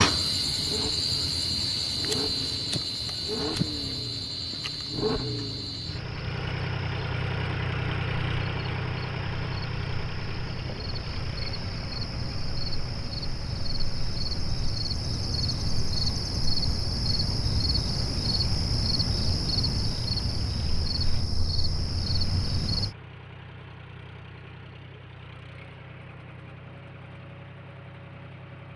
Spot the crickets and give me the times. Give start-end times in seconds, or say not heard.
0.0-22.9.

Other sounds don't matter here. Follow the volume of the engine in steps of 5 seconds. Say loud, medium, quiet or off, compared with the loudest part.
medium, loud, medium, quiet, quiet, quiet.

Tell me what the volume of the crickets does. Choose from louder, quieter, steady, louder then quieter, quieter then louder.
quieter then louder.